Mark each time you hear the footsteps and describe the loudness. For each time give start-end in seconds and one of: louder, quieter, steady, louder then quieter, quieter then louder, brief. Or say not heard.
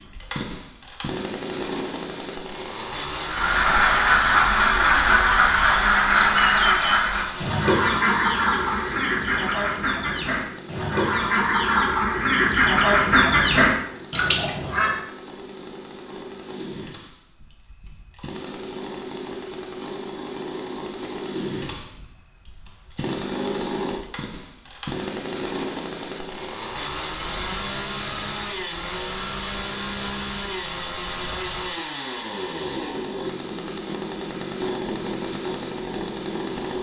not heard.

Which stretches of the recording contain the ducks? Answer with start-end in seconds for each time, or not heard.
3.2-15.0.